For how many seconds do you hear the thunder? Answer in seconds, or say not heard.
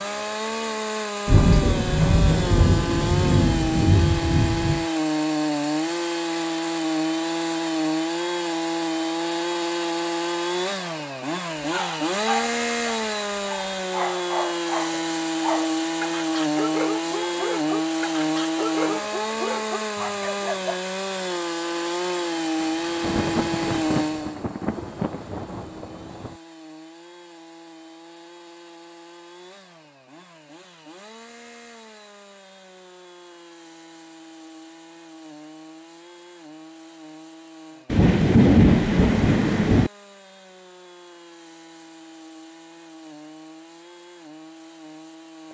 9 s.